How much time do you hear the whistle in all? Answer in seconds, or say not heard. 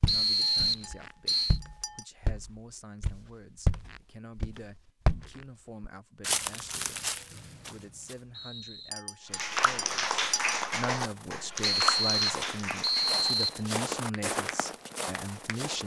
5 s.